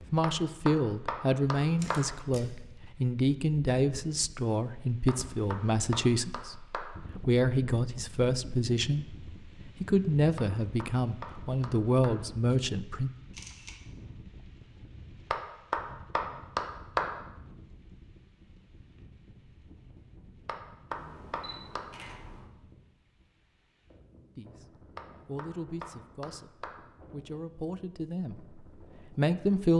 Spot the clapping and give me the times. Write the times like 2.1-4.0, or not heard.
0.2-2.1, 5.0-7.0, 10.3-12.3, 15.3-17.2, 20.4-21.9, 24.9-26.9.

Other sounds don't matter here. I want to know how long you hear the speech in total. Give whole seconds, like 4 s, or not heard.
18 s.